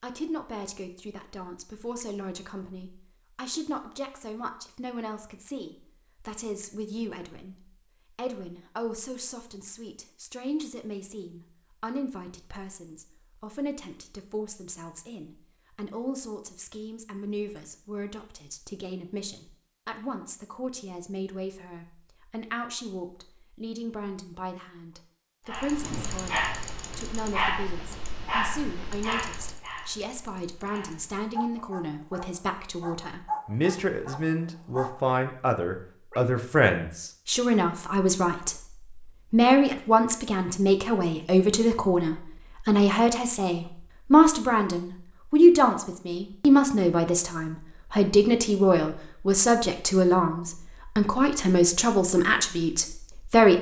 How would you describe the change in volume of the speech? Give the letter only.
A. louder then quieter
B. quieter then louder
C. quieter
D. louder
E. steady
D.